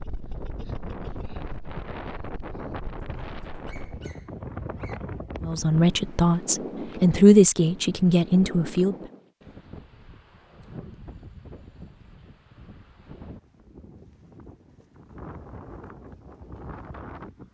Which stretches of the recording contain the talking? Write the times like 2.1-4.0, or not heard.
5.4-8.9.